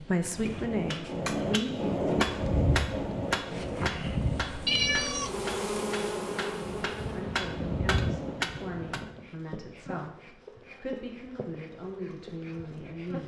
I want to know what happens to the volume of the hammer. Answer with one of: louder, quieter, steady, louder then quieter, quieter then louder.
quieter then louder.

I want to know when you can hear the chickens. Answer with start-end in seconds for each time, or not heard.
not heard.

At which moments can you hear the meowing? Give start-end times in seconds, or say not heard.
4.7-5.5.